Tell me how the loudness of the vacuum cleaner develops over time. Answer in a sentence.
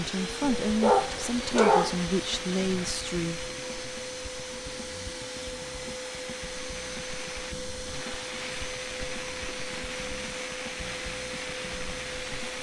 The volume of the vacuum cleaner stays about the same.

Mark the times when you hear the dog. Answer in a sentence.
You can hear the dog from 0.6 to 2.0 s.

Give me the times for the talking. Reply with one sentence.
The talking can be heard from 0.0 to 3.4 s.